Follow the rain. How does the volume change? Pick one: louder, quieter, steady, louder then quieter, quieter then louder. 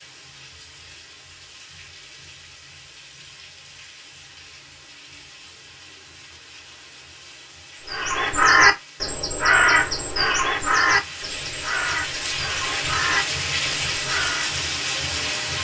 louder.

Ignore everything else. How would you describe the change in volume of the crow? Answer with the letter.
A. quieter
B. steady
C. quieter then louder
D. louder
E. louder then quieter
A.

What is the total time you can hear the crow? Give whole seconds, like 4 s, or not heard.
7 s.